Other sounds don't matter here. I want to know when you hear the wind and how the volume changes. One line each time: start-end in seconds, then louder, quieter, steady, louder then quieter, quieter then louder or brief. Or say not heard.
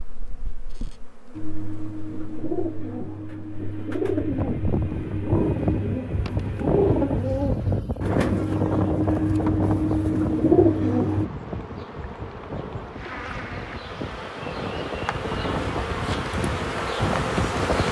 4.0-17.8 quieter then louder.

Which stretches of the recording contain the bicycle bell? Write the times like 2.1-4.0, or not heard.
not heard.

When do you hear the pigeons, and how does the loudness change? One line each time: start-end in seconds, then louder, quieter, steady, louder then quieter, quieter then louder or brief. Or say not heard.
1.4-11.2 louder.